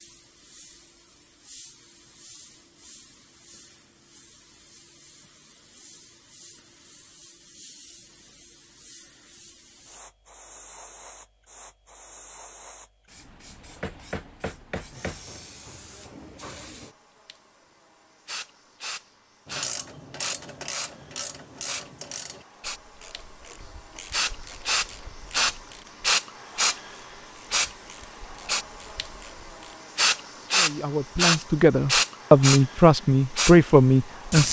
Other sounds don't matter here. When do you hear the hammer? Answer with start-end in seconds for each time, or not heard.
13.8-15.2.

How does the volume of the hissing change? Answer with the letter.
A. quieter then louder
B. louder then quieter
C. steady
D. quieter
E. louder
E.